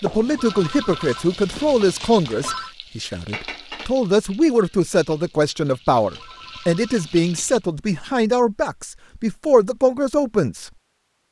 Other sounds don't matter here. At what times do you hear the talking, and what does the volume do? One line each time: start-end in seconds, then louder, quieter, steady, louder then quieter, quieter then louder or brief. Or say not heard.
0.0-10.7 steady.